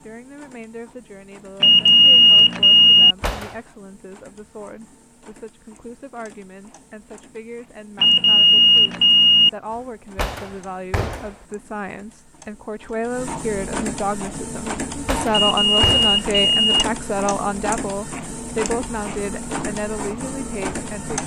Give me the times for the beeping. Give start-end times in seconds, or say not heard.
1.6-3.1, 8.0-9.5, 15.3-16.9.